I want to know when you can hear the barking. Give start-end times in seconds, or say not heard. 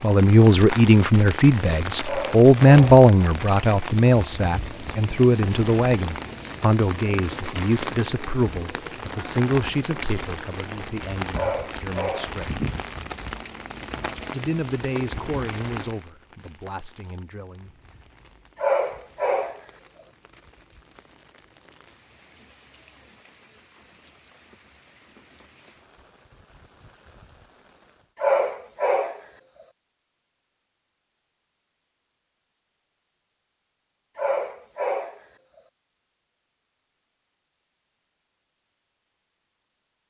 2.0-3.0, 11.3-12.3, 18.6-19.6, 28.2-29.2, 34.1-35.2.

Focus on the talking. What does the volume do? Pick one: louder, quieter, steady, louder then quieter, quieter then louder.
quieter.